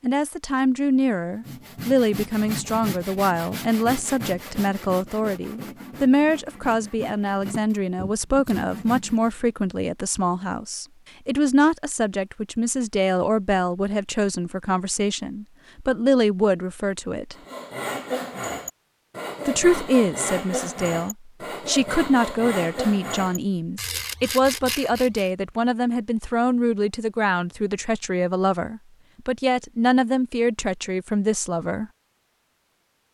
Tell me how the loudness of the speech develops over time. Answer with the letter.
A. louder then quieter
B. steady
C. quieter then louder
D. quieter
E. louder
B.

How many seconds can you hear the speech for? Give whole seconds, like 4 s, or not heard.
30 s.